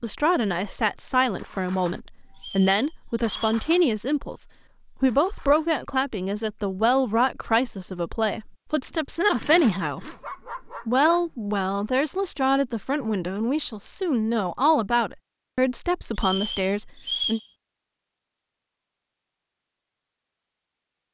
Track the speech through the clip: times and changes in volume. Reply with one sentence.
You can hear the speech from 0.0 to 17.4 s, at a steady volume.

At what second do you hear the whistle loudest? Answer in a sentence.
The volume of the whistle peaks at 17 seconds.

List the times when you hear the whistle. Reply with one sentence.
The whistle can be heard from 2.4 to 3.6 s and from 16.1 to 17.4 s.